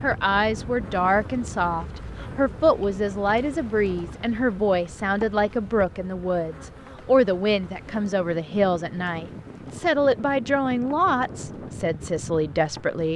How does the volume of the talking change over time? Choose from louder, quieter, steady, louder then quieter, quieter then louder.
steady.